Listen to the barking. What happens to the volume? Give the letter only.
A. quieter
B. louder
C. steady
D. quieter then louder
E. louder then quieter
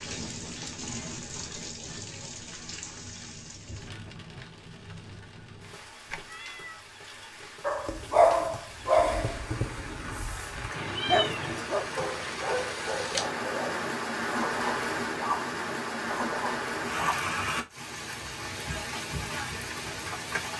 A.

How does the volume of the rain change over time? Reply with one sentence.
The volume of the rain goes down, then up.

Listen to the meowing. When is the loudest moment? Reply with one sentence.
The loudest moment of the meowing is at 11 seconds.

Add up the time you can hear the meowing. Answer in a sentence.
You can hear the meowing for 2 seconds altogether.